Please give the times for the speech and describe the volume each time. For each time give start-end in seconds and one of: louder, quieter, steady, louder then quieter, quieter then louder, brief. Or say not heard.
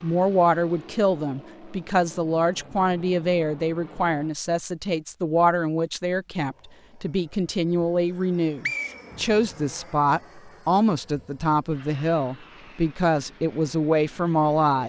0.0-14.8 steady.